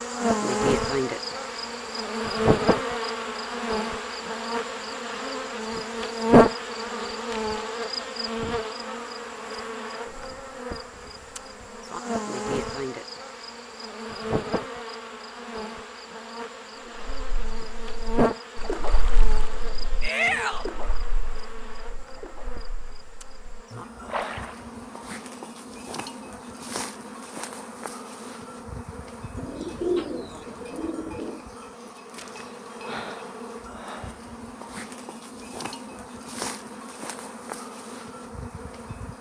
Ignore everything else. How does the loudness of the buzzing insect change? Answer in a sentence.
The volume of the buzzing insect goes down.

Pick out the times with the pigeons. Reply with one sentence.
You can hear the pigeons from 29.4 to 31.4 s.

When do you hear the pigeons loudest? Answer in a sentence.
The volume of the pigeons peaks at 30 seconds.